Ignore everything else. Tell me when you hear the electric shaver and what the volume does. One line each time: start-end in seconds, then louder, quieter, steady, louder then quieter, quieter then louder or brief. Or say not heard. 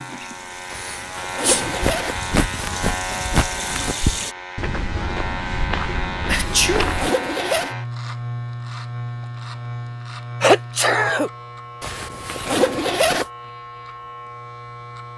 0.0-15.1 quieter.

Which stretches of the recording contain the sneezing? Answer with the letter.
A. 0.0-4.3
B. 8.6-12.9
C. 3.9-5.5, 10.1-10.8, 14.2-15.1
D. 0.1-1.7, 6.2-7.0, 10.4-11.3
D.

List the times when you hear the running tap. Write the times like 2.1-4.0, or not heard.
0.0-4.3.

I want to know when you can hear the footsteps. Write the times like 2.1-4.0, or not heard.
1.5-7.1.